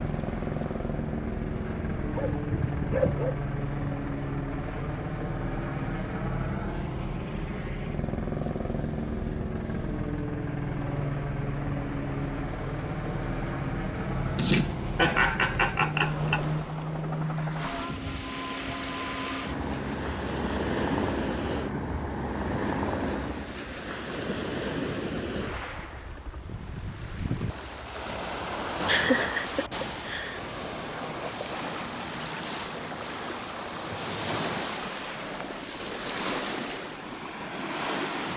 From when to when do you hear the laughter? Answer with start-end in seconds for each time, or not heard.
14.3-16.4, 28.9-30.4.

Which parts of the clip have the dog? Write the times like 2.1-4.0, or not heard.
2.0-3.4.